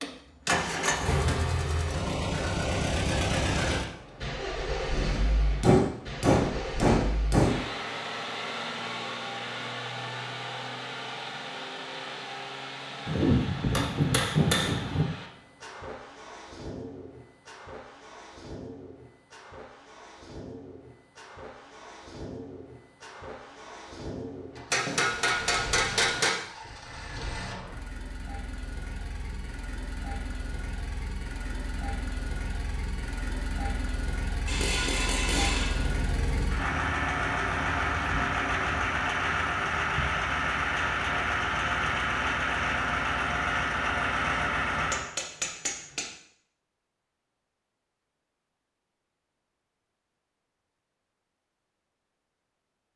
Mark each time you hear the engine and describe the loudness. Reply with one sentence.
You can hear the engine from 0.0 to 45.1 s, getting quieter then louder.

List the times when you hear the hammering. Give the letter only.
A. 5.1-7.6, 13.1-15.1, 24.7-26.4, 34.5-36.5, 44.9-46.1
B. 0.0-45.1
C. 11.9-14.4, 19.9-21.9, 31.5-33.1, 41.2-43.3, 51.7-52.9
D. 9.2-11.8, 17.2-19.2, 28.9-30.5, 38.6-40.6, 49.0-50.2
A.